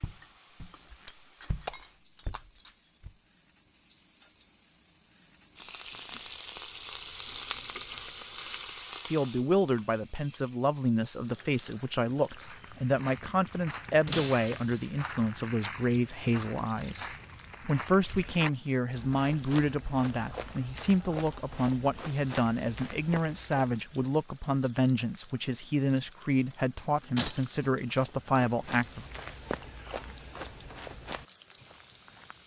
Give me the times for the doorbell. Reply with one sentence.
The doorbell can't be heard in this clip.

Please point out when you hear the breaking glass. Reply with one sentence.
You can hear the breaking glass from 1.1 to 2.9 s, from 14.1 to 14.9 s and from 27.1 to 27.9 s.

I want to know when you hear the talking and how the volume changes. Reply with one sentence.
You can hear the talking from 9.1 to 29.1 s, at a steady volume.